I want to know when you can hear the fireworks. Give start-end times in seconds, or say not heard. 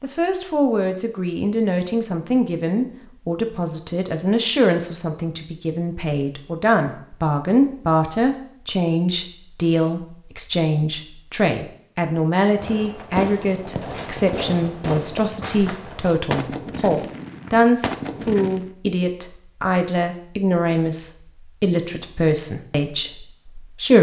12.5-18.7.